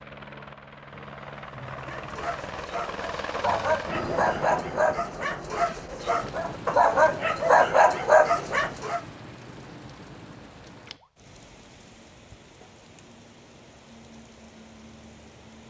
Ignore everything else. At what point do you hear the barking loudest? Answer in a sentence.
The volume of the barking peaks at 8 seconds.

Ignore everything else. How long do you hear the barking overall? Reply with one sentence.
You can hear the barking for 7 seconds altogether.